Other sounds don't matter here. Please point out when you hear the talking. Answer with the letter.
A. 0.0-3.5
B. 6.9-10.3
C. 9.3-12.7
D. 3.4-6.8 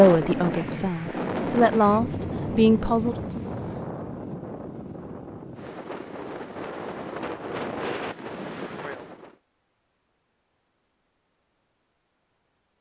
A.